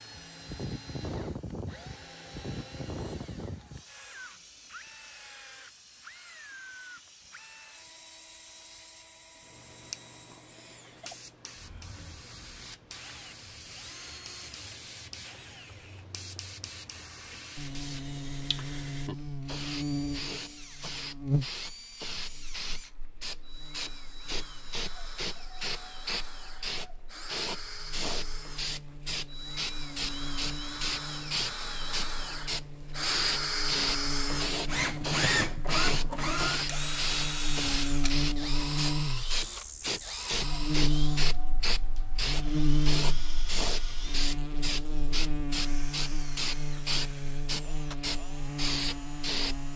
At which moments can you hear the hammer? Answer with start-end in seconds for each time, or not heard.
not heard.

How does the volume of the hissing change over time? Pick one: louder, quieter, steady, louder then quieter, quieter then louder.
louder.